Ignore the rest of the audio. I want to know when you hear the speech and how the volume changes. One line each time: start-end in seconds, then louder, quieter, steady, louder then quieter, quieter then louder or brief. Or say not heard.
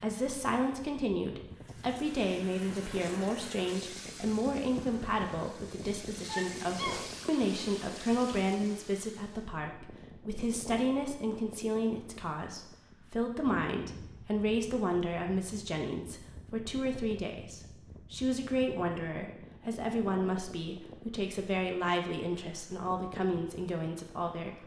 0.0-24.6 steady.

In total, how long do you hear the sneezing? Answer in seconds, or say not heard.
2 s.